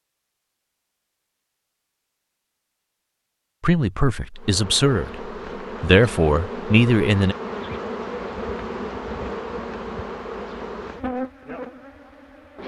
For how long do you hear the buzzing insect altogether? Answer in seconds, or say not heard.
8 s.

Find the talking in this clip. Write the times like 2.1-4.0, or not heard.
3.6-7.3.